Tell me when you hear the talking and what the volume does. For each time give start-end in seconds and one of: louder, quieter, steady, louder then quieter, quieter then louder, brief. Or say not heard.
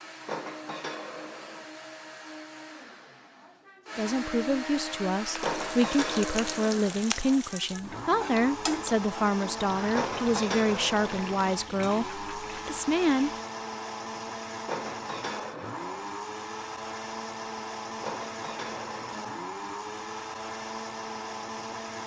4.0-13.3 steady.